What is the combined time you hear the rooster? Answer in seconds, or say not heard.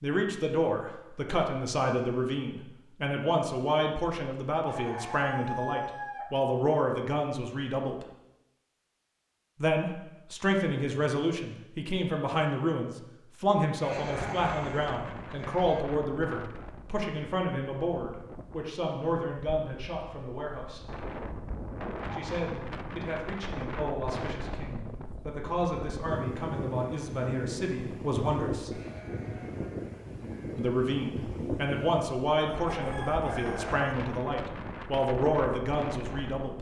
3 s.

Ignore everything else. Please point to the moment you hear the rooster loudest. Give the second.
6 s.